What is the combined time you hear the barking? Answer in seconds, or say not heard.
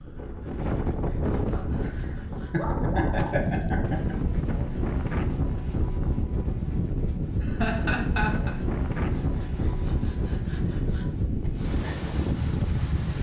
2 s.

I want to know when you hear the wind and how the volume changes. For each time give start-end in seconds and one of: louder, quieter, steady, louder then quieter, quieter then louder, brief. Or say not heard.
0.0-13.1 steady.